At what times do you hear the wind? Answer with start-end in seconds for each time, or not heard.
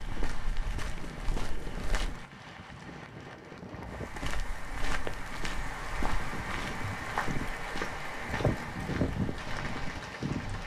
0.0-10.6.